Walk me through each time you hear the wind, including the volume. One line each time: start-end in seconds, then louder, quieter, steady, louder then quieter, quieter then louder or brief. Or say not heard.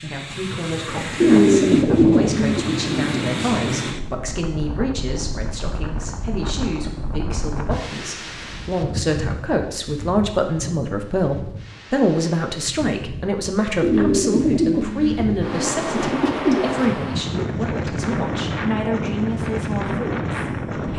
0.0-20.9 quieter then louder.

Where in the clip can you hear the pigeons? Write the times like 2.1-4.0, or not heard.
1.2-3.4, 13.8-16.6.